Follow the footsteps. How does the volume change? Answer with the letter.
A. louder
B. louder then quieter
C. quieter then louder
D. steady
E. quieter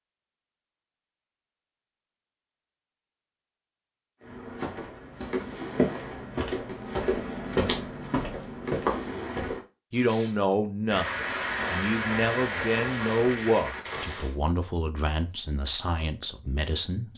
A.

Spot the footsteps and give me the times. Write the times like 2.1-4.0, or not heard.
4.2-9.6.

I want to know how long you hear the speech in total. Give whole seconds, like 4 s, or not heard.
7 s.